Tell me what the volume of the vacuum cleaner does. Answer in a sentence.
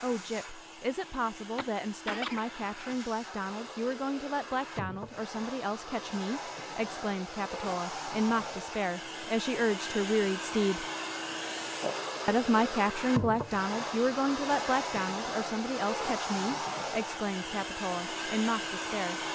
The loudness of the vacuum cleaner goes up.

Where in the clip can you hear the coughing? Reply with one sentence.
You can hear the coughing from 1.6 to 2.5 s.